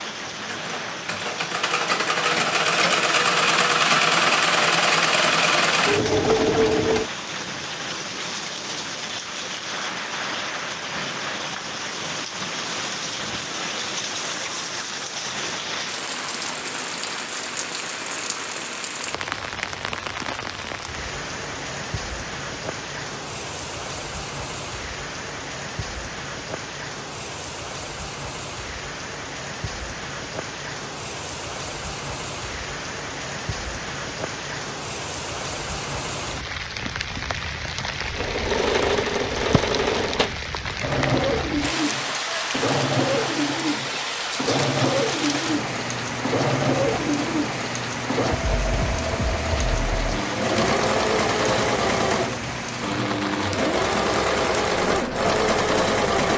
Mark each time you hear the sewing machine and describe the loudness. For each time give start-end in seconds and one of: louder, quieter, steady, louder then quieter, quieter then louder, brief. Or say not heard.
0.1-7.1 louder
38.1-56.3 steady.